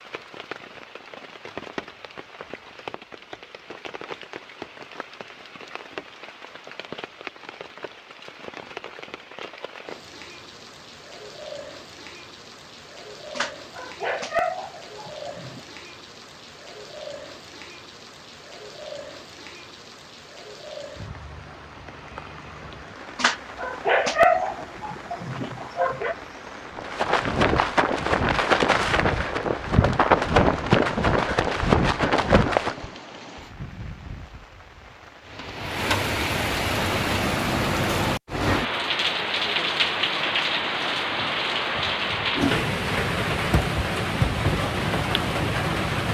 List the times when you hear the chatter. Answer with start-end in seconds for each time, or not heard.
not heard.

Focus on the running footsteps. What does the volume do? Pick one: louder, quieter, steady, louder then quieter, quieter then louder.
steady.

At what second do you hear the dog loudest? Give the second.
24 s.